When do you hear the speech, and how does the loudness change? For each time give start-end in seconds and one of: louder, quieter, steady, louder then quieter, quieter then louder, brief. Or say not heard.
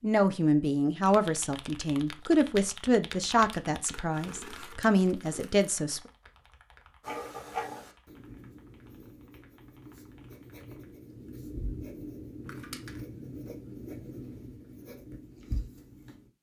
0.0-6.0 quieter then louder.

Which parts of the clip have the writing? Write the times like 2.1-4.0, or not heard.
7.0-16.3.